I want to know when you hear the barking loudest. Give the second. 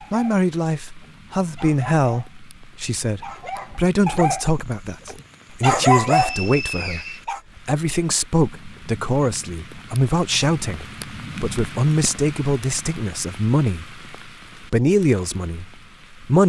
6 s.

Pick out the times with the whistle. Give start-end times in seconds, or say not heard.
6.0-7.2.